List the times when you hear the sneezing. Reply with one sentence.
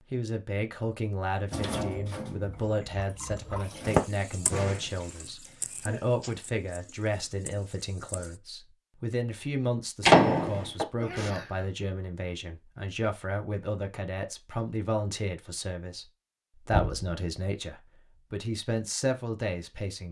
The sneezing can be heard from 5.5 to 6.3 s and from 10.9 to 11.7 s.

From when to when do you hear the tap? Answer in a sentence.
You can hear the tap from 1.5 to 8.4 s.